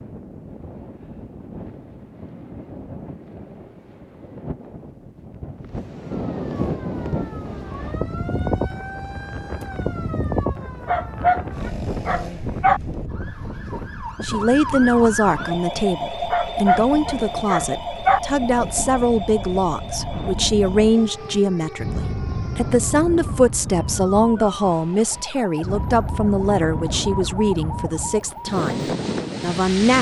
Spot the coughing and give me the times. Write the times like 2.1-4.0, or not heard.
not heard.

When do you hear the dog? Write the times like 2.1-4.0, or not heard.
10.8-12.8, 16.3-18.2.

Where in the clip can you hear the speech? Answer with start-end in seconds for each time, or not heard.
14.2-29.9.